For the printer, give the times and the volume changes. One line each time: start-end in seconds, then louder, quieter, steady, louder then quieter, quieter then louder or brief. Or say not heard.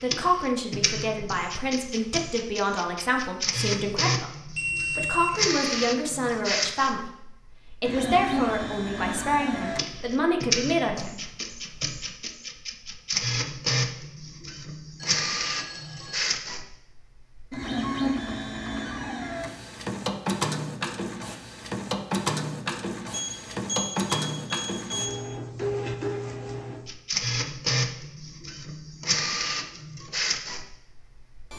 0.0-31.5 steady.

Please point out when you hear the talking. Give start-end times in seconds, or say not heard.
0.0-7.2, 7.8-11.3.